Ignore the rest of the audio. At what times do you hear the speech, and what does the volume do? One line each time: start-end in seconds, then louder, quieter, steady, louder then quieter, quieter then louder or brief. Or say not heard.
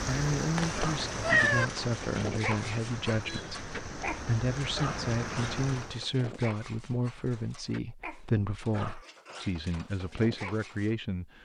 0.1-11.4 steady.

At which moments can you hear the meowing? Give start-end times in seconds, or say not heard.
0.6-1.6.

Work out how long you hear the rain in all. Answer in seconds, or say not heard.
6 s.